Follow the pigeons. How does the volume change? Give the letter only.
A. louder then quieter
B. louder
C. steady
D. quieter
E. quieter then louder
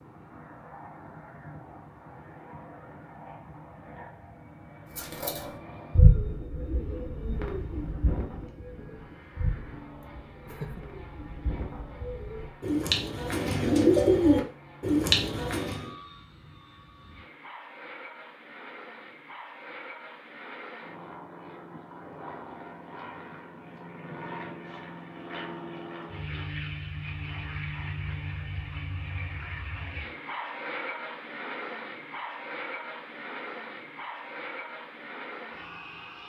E.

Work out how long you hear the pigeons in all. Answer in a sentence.
You can hear the pigeons for 11 seconds altogether.